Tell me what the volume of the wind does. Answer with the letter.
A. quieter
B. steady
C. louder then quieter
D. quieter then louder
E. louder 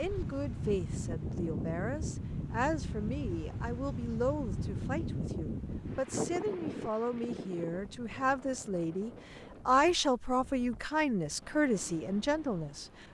A.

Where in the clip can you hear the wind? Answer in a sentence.
The wind can be heard from 0.0 to 13.0 s.